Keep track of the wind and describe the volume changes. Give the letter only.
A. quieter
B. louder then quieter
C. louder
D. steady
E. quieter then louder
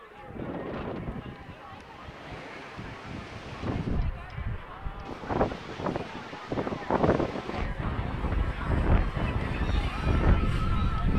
C.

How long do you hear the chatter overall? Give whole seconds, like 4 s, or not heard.
11 s.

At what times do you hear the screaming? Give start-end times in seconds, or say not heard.
not heard.